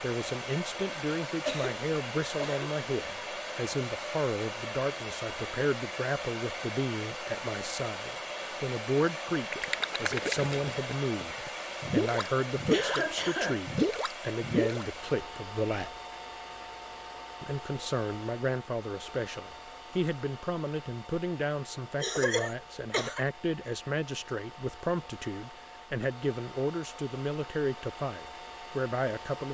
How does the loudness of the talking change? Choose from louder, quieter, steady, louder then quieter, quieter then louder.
steady.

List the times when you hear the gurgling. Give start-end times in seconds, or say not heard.
9.2-13.1, 13.7-14.8.